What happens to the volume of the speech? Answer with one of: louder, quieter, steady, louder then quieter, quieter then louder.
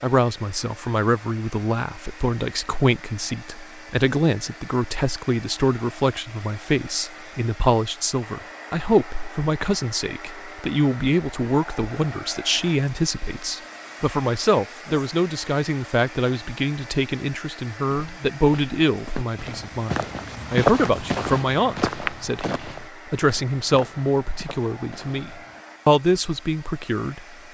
steady.